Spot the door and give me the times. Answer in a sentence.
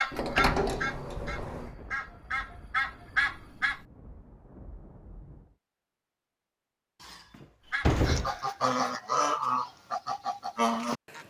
You can hear the door from 0.1 to 1.7 s and from 7.0 to 8.3 s.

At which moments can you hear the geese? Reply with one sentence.
You can hear the geese from 0.0 to 3.8 s and from 7.7 to 11.2 s.